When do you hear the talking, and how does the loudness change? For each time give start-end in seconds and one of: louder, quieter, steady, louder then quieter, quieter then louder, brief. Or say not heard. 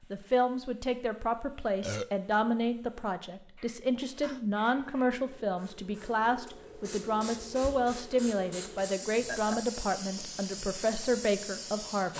0.1-12.1 steady.